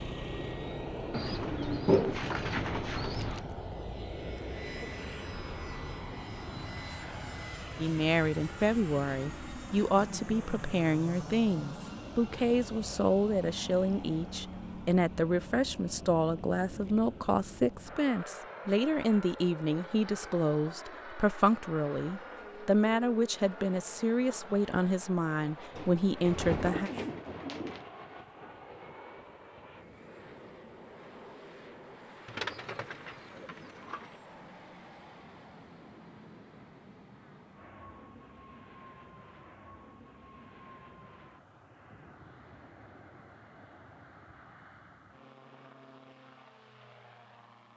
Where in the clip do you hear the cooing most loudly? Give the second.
2 s.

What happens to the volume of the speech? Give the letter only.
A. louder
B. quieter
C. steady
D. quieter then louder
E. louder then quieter
C.